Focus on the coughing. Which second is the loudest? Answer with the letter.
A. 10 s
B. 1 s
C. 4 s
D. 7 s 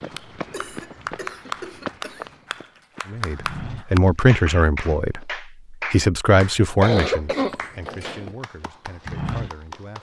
D.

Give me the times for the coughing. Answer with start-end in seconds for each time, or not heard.
0.5-2.2, 6.8-8.3.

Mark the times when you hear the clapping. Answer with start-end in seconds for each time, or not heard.
0.0-9.9.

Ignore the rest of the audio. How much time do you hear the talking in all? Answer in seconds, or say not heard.
7 s.